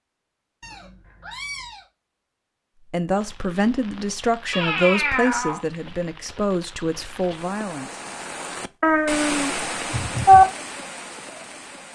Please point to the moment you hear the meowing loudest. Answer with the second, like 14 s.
10 s.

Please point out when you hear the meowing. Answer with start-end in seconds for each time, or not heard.
0.6-1.9, 4.5-5.6, 8.8-10.4.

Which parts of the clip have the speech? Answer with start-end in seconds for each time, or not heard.
2.9-8.1.